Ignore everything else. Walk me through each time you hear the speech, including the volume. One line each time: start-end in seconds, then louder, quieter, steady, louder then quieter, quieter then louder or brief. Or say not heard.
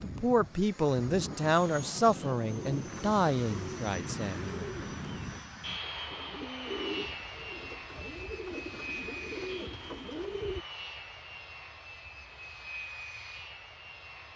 0.0-4.7 quieter.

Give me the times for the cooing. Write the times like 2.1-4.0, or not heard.
2.5-10.7.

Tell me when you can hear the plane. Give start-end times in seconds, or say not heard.
0.0-14.3.